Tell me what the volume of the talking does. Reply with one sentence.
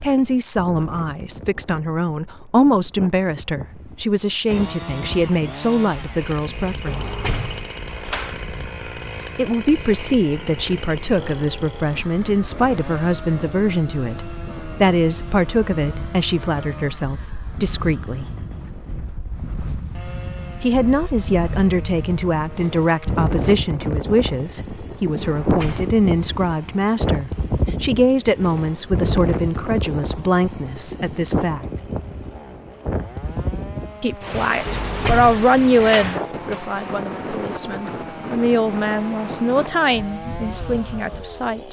The volume of the talking stays about the same.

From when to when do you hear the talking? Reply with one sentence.
The talking can be heard from 0.0 to 7.2 s, from 9.3 to 18.2 s, from 20.6 to 31.6 s and from 34.0 to 41.6 s.